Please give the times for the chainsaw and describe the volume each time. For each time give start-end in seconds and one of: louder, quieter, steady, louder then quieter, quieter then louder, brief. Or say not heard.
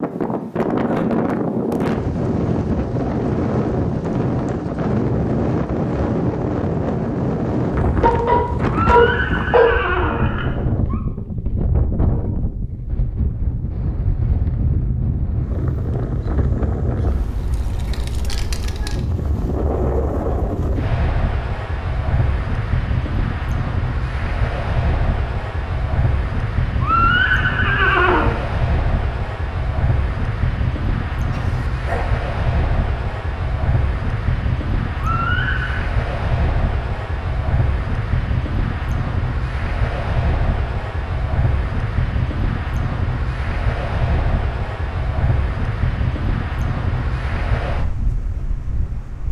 not heard.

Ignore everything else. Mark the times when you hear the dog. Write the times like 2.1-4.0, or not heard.
8.0-9.8, 31.3-32.1.